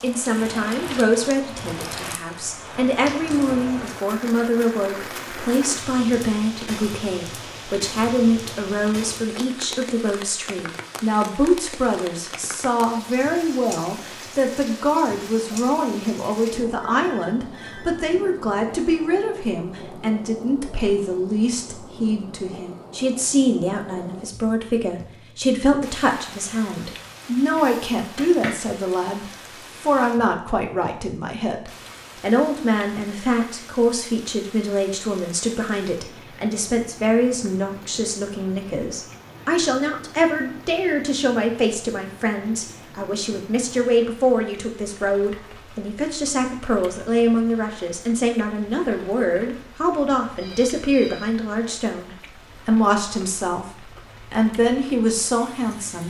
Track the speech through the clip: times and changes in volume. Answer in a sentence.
You can hear the speech from 0.0 to 56.0 s, at a steady volume.